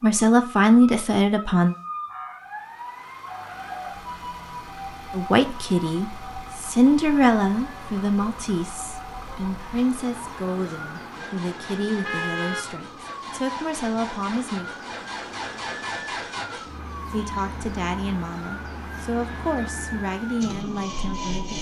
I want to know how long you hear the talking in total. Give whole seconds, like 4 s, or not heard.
16 s.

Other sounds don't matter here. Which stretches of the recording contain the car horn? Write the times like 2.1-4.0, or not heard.
12.0-12.7.